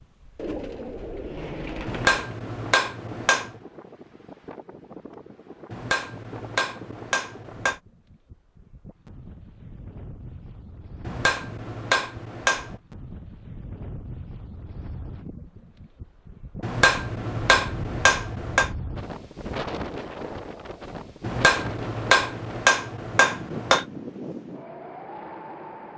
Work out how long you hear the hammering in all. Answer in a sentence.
You can hear the hammering for 10 seconds altogether.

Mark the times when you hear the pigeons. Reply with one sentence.
You can hear the pigeons from 0.3 to 2.4 s.